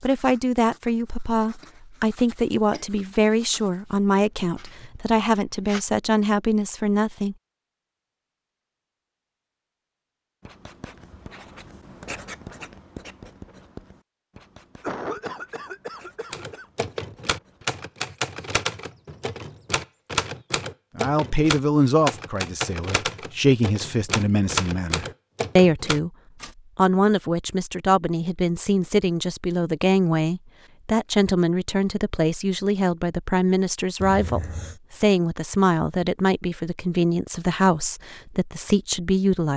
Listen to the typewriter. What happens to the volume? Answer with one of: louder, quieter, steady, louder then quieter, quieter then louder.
steady.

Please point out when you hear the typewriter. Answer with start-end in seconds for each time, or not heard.
16.3-26.5.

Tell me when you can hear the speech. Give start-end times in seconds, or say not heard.
0.0-7.3, 20.9-26.1, 26.8-39.5.